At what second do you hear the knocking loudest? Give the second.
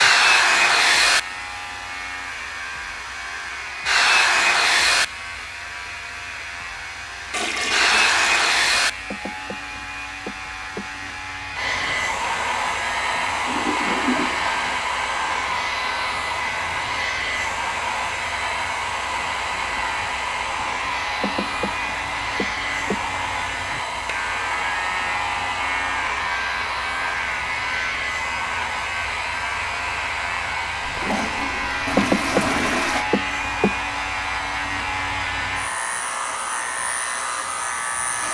32 s.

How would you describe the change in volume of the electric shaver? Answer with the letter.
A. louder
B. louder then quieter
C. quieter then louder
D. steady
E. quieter
A.